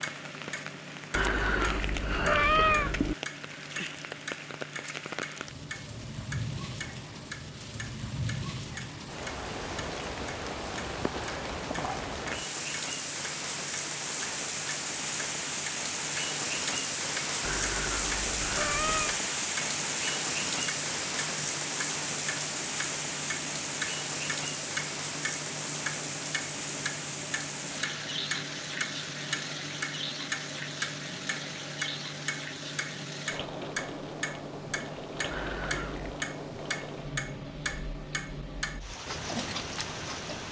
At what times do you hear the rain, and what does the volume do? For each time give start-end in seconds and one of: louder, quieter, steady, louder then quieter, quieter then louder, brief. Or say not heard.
0.0-40.4 louder then quieter.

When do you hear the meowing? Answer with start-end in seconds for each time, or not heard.
1.1-3.1, 17.4-19.2, 35.3-36.2.